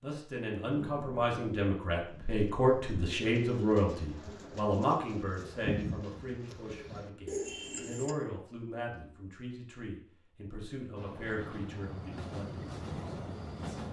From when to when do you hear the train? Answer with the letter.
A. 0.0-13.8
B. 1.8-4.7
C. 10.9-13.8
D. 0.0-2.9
C.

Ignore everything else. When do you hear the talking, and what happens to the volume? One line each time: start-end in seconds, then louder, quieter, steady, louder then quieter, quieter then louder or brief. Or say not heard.
0.0-13.8 quieter.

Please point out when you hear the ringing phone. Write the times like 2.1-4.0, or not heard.
not heard.